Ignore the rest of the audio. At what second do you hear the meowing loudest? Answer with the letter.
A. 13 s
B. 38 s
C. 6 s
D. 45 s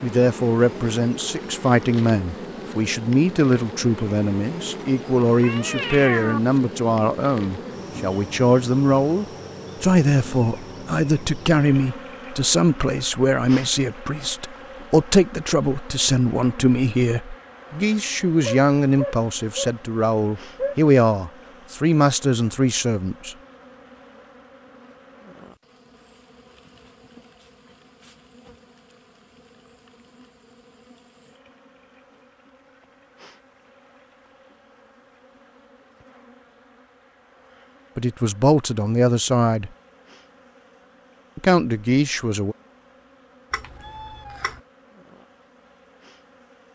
C.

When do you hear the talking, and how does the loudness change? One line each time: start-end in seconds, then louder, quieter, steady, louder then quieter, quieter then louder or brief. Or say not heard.
0.0-23.4 steady
38.0-39.7 brief
41.4-42.5 brief.